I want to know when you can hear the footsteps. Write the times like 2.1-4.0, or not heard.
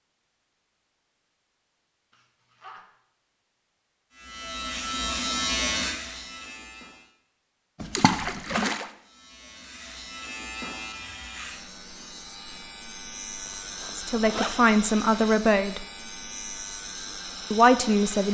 not heard.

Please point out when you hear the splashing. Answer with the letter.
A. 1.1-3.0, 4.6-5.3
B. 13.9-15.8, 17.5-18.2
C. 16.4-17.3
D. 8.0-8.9
D.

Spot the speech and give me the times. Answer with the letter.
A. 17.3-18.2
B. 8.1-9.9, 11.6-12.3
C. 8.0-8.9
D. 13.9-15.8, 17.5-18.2
D.